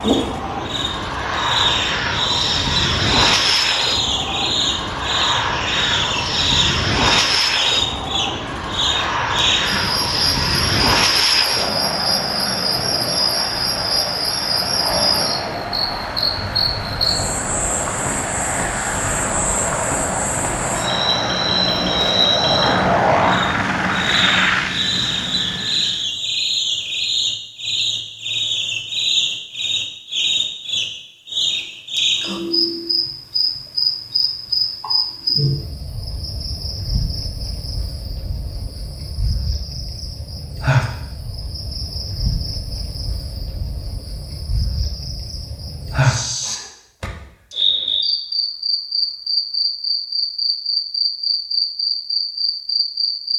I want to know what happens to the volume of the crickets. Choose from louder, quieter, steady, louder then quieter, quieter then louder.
steady.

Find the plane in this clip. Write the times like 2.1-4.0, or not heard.
0.0-26.1.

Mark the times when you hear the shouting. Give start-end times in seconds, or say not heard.
not heard.